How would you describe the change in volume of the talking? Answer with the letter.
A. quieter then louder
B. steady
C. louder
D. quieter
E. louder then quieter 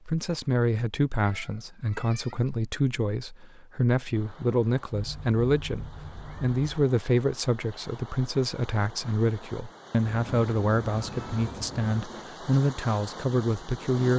B.